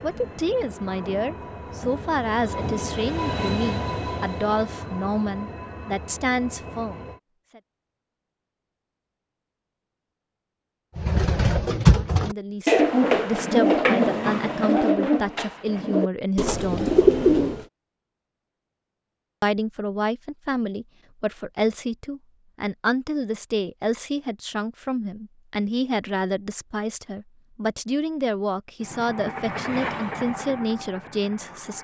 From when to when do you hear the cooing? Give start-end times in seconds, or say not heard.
10.9-17.6.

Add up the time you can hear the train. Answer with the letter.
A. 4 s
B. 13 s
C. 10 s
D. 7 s
C.